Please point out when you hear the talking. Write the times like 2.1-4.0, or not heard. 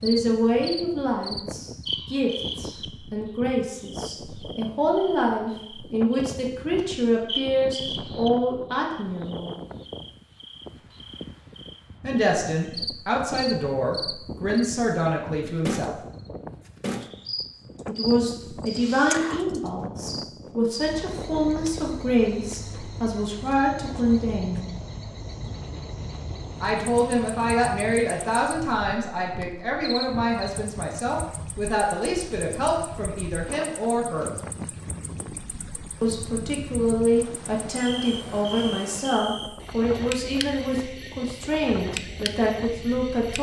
0.0-9.6, 12.0-15.9, 17.9-24.7, 26.6-34.3, 36.0-43.3.